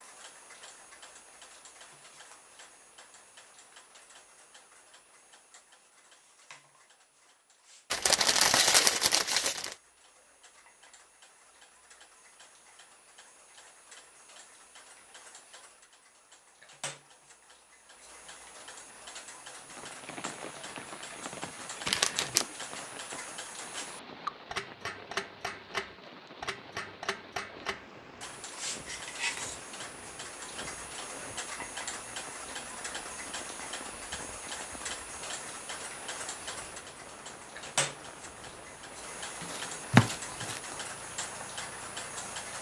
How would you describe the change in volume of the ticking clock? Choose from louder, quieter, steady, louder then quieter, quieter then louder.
louder.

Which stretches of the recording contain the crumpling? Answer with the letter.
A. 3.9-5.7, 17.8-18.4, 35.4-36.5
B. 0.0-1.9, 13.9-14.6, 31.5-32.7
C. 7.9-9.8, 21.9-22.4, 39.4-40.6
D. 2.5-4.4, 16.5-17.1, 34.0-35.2
C.